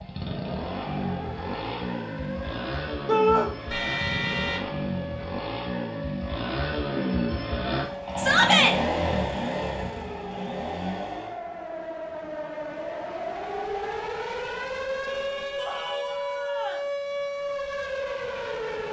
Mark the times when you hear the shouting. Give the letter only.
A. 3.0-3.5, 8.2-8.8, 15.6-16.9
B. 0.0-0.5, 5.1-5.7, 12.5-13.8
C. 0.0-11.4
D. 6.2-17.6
A.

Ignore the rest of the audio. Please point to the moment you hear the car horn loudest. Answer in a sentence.
The loudest moment of the car horn is at 4 seconds.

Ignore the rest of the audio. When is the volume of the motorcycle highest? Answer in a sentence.
The loudest moment of the motorcycle is at 9 seconds.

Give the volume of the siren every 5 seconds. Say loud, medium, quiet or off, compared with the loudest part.
medium, medium, loud, loud.